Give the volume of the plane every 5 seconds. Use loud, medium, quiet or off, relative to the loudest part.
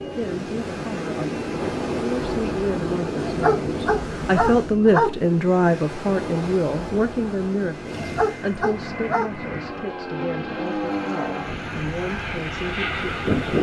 loud, medium, loud.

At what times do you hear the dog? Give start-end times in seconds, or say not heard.
3.2-5.1, 7.9-9.5.